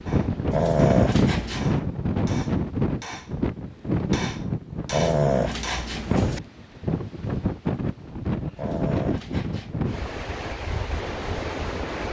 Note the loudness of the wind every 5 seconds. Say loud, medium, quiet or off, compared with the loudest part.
loud, loud, medium.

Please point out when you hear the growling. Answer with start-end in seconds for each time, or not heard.
0.5-1.8, 4.9-6.4, 8.6-9.8.